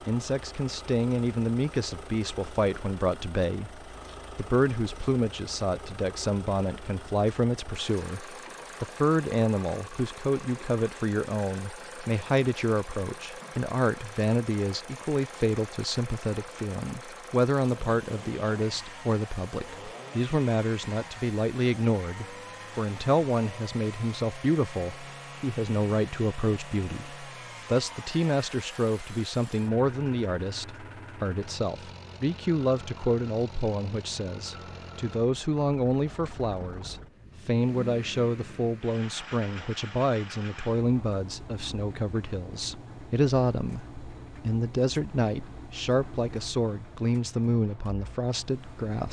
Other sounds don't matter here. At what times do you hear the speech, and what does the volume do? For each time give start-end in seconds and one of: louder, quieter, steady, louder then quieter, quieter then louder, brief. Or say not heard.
0.1-49.0 steady.